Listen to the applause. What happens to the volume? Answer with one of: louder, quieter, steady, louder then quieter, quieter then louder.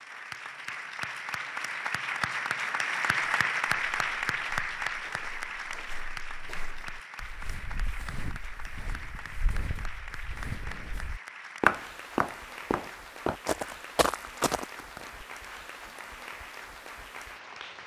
quieter.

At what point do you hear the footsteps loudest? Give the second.
12 s.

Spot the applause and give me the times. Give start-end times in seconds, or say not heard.
0.0-17.8.